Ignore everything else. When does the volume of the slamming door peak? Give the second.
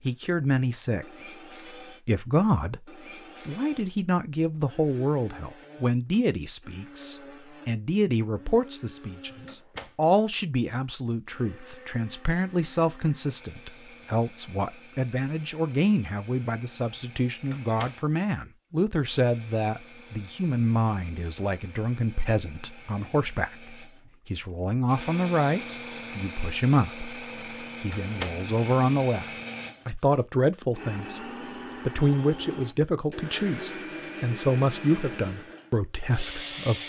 28 s.